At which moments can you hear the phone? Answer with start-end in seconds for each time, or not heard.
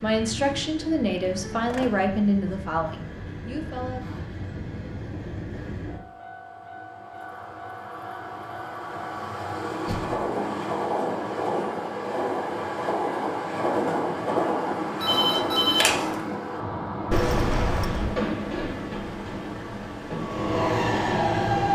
15.0-16.2.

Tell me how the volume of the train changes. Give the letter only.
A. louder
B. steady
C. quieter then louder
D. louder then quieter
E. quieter
A.